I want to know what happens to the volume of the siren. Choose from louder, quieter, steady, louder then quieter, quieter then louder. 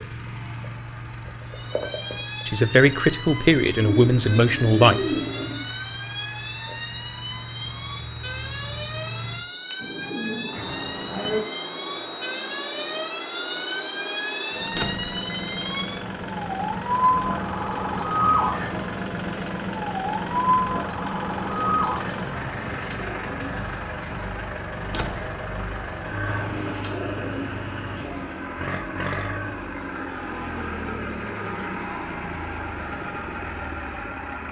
louder.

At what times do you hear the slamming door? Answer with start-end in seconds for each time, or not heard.
14.7-15.1, 24.8-25.4.